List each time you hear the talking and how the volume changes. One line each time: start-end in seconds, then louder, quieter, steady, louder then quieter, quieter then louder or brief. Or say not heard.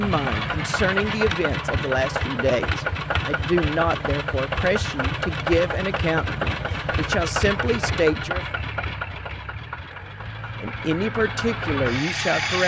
0.0-8.4 steady
10.6-12.6 brief.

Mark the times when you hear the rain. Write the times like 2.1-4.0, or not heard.
not heard.